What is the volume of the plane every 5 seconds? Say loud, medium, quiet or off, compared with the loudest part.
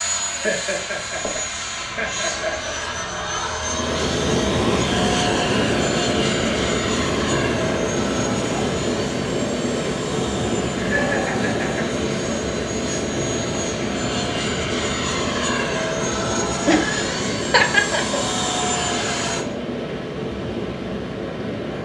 loud, loud, medium, loud, off.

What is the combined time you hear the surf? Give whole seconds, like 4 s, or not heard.
18 s.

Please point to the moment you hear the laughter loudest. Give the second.
18 s.